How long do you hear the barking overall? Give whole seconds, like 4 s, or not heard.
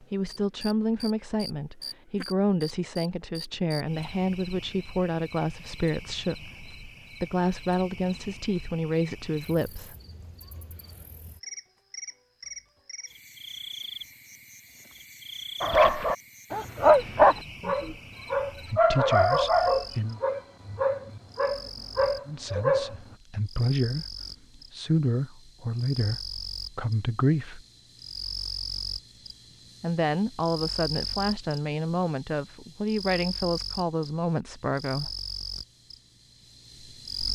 7 s.